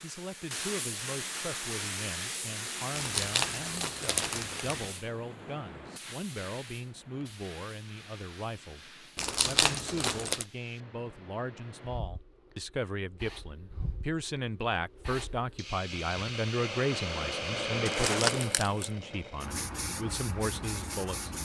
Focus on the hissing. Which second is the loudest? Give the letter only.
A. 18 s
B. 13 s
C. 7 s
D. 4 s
A.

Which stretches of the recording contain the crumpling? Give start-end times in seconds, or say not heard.
3.0-4.9, 9.2-10.4, 17.9-18.9.